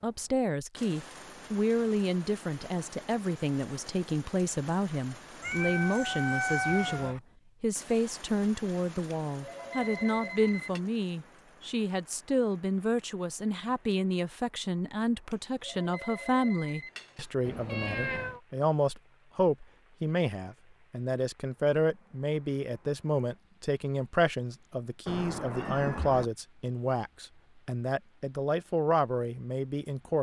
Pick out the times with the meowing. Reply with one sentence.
You can hear the meowing from 5.4 to 7.2 s, from 17.4 to 18.4 s and from 25.1 to 26.2 s.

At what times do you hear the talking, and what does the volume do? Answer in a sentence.
The talking can be heard from 0.0 to 30.1 s, at a steady volume.